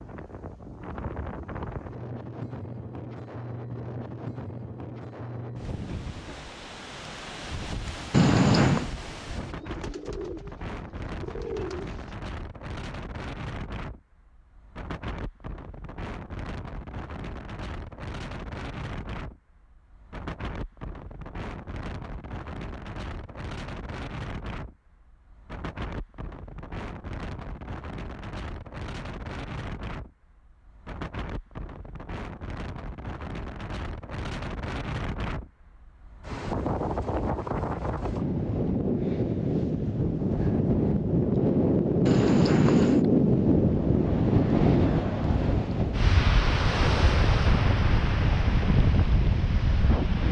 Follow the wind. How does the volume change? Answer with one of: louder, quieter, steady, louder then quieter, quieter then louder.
louder.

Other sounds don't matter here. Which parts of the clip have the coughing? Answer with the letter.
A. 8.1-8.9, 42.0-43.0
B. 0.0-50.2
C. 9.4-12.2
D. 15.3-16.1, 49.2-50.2
A.